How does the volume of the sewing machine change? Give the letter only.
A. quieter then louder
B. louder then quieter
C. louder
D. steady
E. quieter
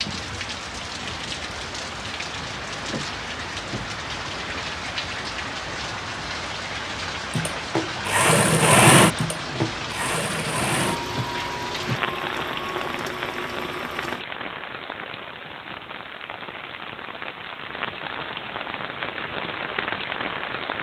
E.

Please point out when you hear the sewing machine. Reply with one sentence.
You can hear the sewing machine from 7.3 to 14.2 s.